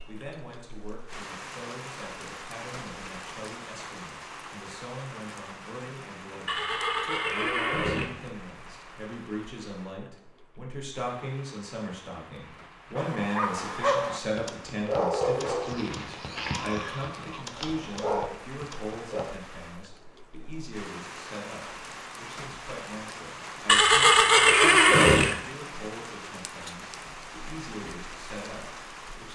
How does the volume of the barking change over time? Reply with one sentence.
The volume of the barking goes down, then up.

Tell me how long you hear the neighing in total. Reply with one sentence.
You can hear the neighing for 5 seconds altogether.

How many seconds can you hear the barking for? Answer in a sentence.
You can hear the barking for 6 seconds altogether.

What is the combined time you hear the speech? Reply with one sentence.
The speech can be heard for 29 seconds in total.